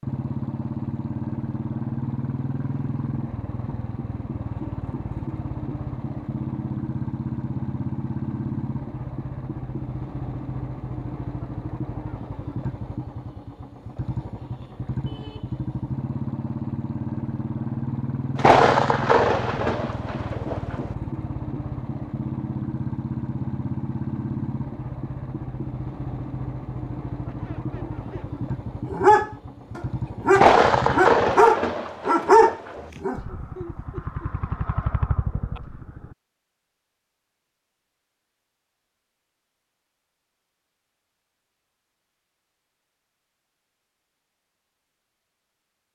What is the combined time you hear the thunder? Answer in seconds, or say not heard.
5 s.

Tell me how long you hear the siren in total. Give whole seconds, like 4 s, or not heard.
not heard.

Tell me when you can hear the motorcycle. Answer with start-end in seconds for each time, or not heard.
0.0-31.4, 33.1-36.1.